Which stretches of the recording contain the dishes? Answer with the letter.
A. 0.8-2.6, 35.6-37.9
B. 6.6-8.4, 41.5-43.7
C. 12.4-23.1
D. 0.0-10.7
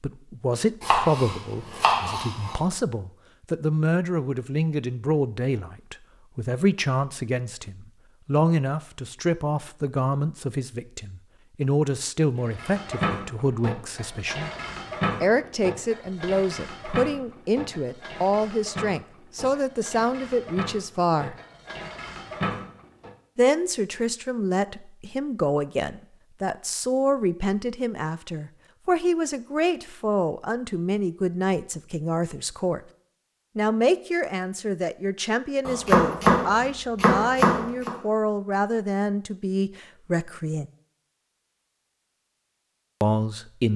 C.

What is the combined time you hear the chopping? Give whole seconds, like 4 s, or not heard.
4 s.